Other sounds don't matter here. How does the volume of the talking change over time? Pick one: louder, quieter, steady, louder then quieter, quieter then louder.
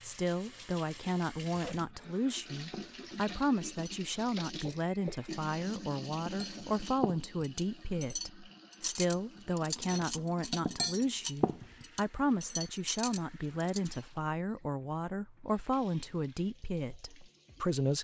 steady.